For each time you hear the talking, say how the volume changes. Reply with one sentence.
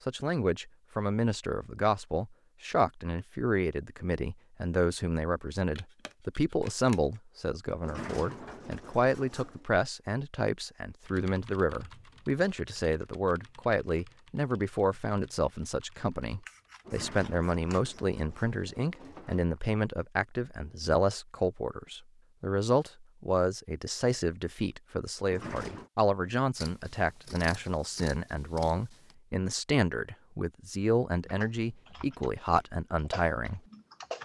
The talking can be heard from 0.1 to 33.6 s, at a steady volume.